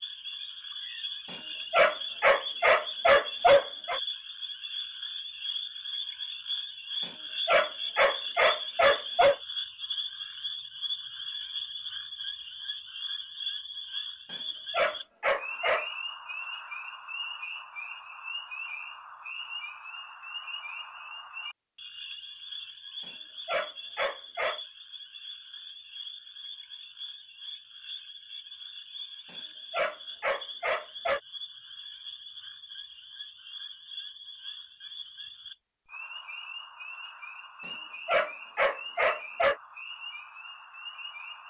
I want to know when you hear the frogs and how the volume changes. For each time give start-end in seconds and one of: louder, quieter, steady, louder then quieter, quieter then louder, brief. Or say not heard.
0.0-41.4 quieter.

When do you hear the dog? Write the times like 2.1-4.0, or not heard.
1.3-4.0, 7.0-9.3, 14.3-15.8, 23.1-24.6, 29.3-31.2, 37.6-39.5.